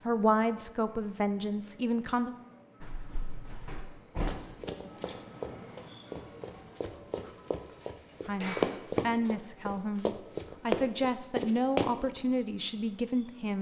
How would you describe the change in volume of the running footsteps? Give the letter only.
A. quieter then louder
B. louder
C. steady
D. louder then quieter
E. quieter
B.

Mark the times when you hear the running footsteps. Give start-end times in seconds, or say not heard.
2.8-11.9.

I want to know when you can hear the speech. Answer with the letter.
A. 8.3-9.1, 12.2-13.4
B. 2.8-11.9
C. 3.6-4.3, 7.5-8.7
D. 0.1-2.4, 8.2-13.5
D.